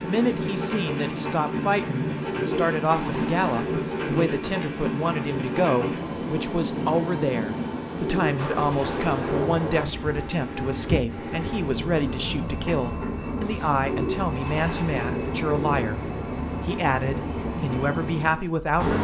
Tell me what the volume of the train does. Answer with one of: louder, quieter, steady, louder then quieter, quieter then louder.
steady.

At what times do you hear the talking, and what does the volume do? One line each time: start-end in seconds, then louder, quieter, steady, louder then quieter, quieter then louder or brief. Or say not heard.
0.0-16.0 steady
16.6-18.9 brief.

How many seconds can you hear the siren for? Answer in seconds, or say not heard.
not heard.